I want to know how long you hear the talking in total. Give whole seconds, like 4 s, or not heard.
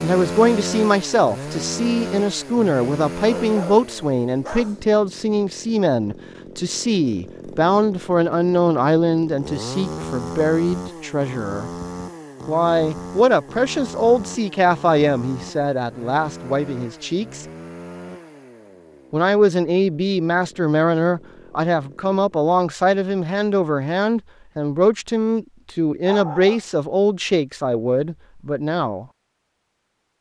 27 s.